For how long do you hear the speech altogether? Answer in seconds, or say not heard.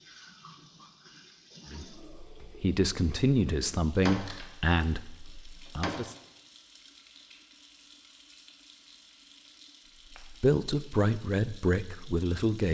7 s.